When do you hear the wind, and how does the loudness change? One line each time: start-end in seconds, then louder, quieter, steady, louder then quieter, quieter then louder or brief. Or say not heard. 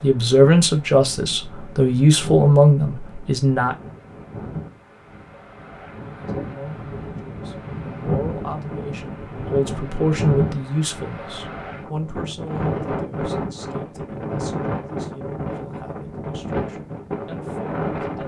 0.0-18.2 louder.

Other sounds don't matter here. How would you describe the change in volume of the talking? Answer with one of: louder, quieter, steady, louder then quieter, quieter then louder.
quieter.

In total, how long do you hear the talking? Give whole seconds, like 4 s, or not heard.
16 s.